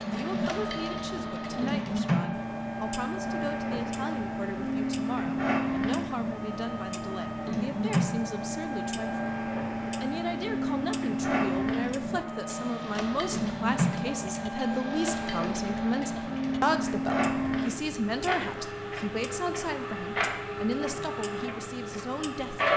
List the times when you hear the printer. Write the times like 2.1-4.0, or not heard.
0.0-22.7.